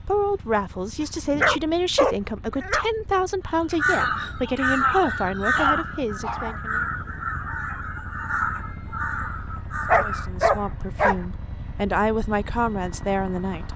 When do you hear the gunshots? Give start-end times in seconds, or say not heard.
not heard.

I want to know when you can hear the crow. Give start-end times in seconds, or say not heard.
3.7-10.7.